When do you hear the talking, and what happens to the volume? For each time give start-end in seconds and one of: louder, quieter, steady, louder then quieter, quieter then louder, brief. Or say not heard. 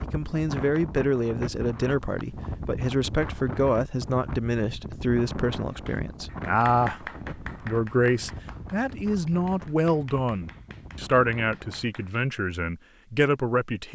0.0-13.9 steady.